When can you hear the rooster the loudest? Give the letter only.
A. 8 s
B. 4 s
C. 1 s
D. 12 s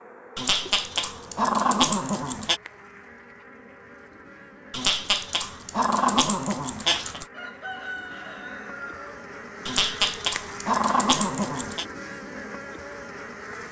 A.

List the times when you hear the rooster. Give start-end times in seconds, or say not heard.
7.3-9.2.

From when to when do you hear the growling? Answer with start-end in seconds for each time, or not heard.
0.3-2.6, 4.7-7.2, 9.7-11.8.